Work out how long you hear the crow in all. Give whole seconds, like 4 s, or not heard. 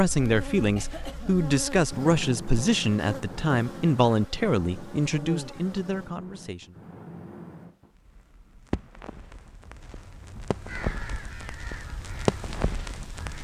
3 s.